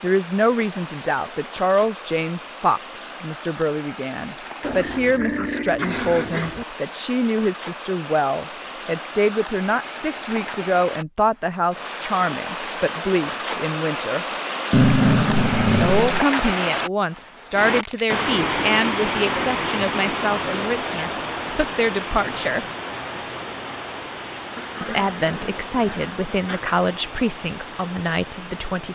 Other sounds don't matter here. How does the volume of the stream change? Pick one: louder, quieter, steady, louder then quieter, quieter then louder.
louder then quieter.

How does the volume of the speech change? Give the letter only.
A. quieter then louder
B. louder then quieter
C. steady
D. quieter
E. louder
C.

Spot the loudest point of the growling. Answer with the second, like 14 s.
15 s.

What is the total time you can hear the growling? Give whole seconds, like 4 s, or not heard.
6 s.